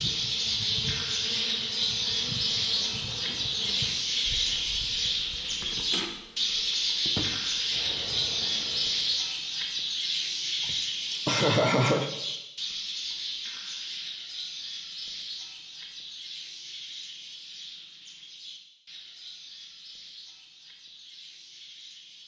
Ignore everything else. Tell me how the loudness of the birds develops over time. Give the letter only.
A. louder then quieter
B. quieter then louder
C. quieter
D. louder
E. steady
C.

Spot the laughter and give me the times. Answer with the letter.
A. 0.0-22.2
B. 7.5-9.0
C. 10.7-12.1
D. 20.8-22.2
C.